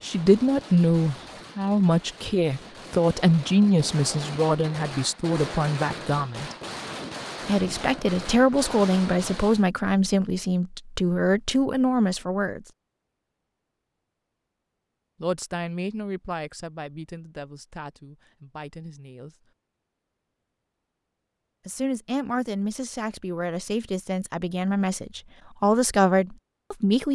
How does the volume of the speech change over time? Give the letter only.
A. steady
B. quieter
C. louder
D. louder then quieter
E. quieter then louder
E.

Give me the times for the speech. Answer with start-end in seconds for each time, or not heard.
0.0-6.5, 7.5-12.7, 15.2-19.4, 21.6-27.1.